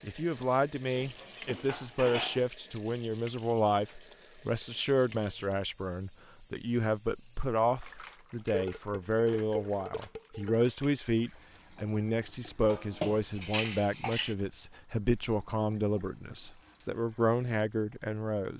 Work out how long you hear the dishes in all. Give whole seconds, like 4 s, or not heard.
5 s.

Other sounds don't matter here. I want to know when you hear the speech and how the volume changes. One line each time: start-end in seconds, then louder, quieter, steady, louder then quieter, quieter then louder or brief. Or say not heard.
0.0-18.5 steady.